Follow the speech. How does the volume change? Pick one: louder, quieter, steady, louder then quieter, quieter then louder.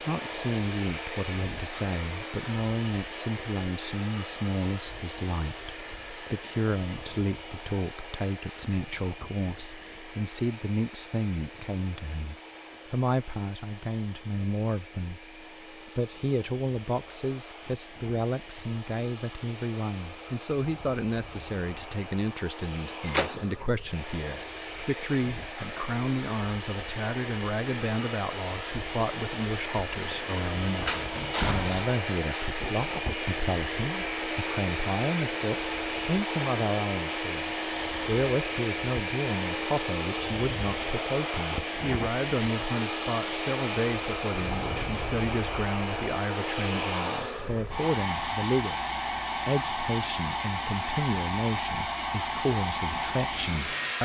steady.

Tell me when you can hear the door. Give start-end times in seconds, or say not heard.
23.1-23.6, 30.9-31.9.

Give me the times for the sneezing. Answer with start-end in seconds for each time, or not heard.
not heard.